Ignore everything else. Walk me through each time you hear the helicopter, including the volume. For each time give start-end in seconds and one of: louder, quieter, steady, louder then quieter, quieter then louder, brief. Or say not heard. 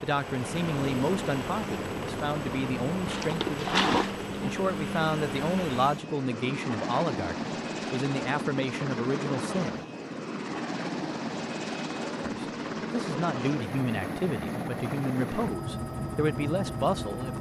0.0-17.3 steady.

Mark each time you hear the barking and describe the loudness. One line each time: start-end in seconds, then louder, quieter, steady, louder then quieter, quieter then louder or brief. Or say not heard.
not heard.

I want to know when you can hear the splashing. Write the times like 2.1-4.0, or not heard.
3.0-4.5.